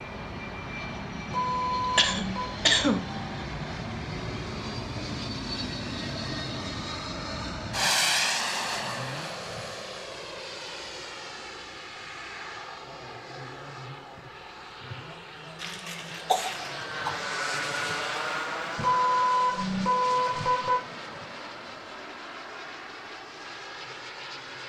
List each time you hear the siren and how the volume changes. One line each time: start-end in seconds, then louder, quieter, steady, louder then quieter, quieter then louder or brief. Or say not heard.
not heard.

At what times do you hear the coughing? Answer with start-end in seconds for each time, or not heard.
1.8-3.0, 15.6-17.1.